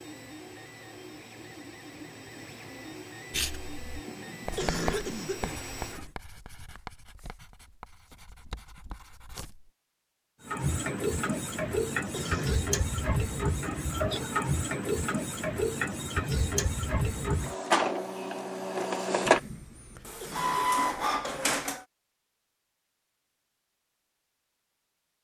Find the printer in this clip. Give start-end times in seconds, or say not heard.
0.0-6.2, 10.4-21.9.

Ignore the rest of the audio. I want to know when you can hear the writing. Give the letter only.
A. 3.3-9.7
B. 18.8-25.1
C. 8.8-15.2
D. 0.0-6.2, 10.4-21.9
A.